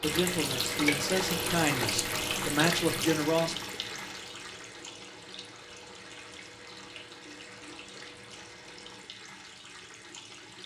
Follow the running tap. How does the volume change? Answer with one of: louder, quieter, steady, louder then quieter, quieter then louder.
quieter.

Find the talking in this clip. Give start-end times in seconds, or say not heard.
0.0-3.5.